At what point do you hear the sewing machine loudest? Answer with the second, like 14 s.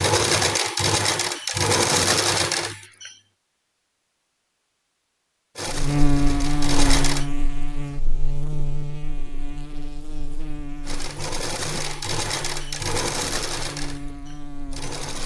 2 s.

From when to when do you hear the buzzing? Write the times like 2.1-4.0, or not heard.
5.7-15.2.